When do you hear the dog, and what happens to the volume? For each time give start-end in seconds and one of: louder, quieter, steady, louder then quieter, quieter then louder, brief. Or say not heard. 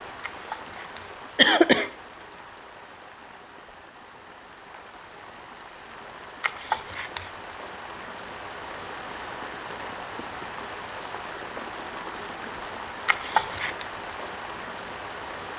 not heard.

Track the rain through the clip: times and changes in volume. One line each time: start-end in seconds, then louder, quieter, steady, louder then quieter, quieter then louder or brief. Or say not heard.
0.0-15.5 louder.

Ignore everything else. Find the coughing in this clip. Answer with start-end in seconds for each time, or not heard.
0.2-1.9, 6.4-7.3, 13.1-13.8.